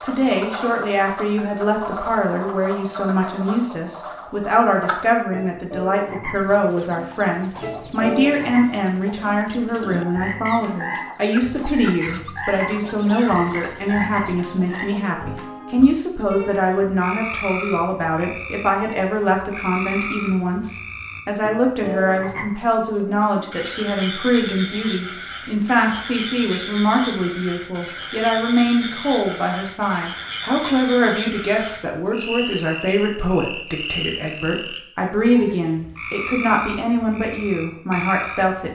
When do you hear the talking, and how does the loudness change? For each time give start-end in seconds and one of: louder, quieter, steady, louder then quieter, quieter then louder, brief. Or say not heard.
0.0-38.7 steady.